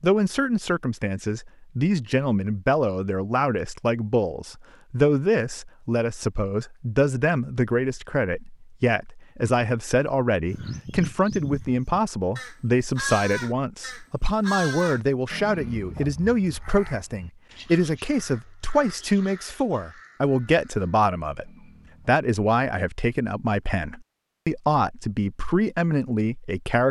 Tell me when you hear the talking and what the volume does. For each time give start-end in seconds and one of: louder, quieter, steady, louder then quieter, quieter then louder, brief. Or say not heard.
0.0-26.8 steady.